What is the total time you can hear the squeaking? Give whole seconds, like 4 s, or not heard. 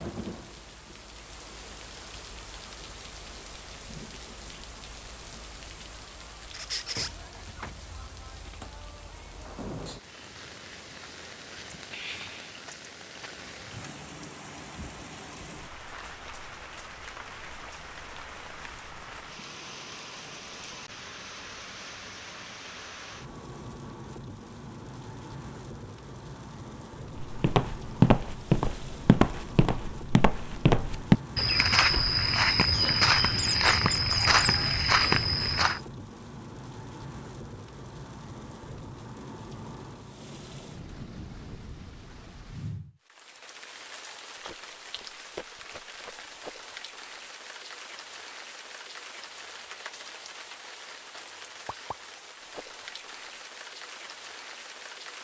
2 s.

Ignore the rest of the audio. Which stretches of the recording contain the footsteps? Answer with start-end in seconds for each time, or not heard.
27.1-35.8.